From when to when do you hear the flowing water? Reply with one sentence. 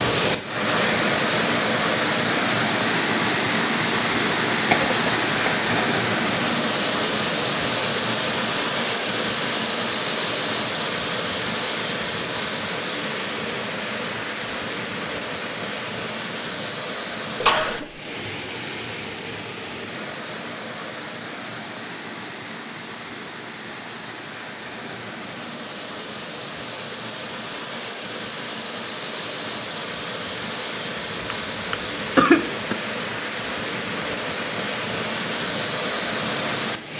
The flowing water can be heard from 0.0 to 36.9 s.